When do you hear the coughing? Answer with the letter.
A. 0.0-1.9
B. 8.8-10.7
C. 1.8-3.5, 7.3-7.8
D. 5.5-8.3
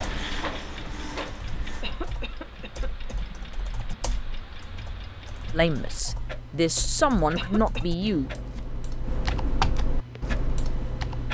C.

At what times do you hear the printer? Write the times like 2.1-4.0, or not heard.
0.0-1.9.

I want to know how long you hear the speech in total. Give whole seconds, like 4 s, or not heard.
3 s.